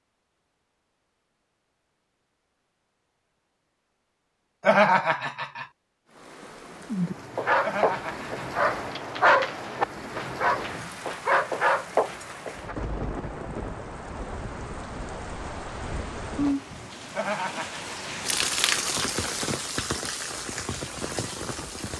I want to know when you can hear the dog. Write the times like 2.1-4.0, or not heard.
7.3-12.8.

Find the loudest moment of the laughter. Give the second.
5 s.